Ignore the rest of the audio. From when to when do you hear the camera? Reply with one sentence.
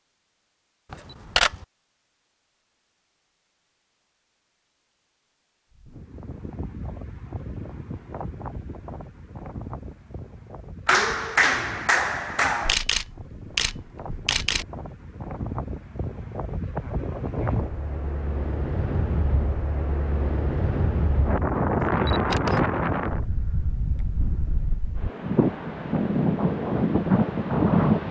You can hear the camera from 0.9 to 1.6 s, from 12.7 to 14.7 s and from 22.1 to 22.6 s.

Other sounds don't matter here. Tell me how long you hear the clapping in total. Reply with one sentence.
You can hear the clapping for 2 seconds altogether.